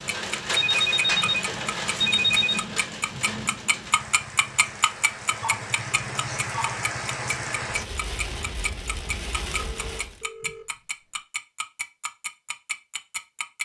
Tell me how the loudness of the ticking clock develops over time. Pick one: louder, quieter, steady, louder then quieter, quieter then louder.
louder then quieter.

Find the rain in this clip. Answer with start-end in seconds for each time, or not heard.
0.0-10.2.